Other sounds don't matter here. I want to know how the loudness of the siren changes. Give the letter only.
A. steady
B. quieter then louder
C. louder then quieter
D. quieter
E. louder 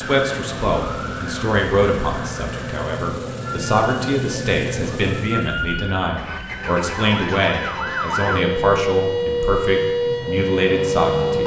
E.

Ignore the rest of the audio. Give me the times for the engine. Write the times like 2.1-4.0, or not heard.
0.0-11.4.